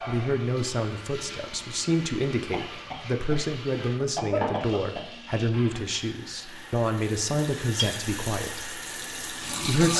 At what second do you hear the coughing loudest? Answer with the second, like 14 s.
4 s.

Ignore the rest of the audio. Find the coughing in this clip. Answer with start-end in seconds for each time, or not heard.
2.5-5.1.